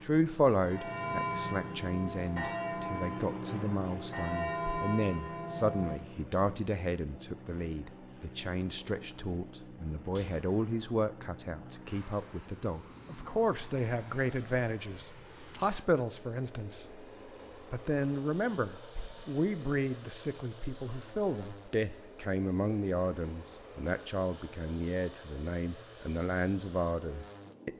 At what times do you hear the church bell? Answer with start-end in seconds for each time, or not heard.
0.6-6.7.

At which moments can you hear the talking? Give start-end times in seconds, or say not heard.
0.0-17.1, 17.7-27.7.